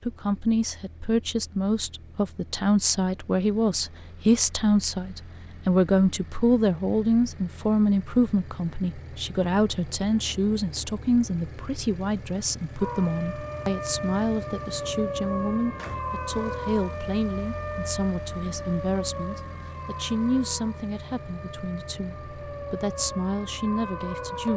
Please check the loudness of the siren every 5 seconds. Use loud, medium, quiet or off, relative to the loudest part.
off, off, loud, loud, loud.